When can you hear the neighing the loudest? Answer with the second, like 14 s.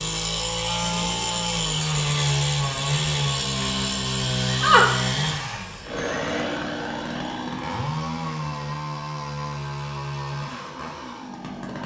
5 s.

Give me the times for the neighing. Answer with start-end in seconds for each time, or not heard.
4.4-6.4.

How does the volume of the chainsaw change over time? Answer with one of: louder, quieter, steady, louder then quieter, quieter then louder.
quieter.